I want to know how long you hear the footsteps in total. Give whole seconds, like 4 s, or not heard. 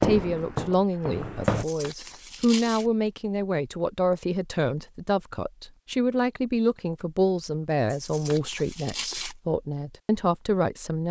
2 s.